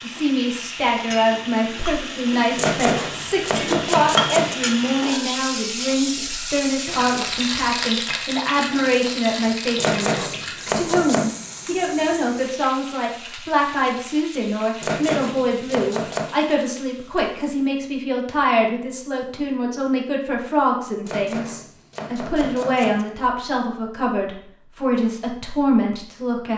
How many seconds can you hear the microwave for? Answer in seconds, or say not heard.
not heard.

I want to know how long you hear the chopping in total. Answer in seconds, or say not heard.
7 s.